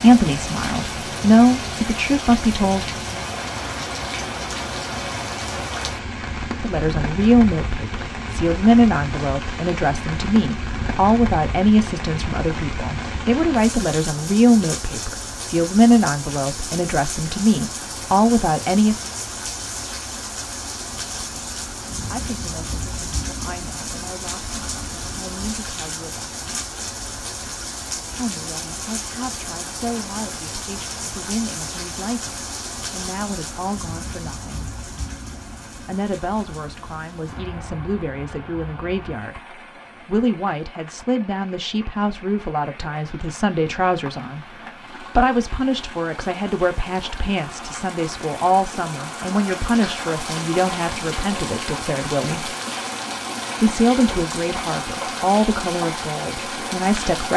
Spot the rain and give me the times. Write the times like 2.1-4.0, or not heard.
0.0-57.3.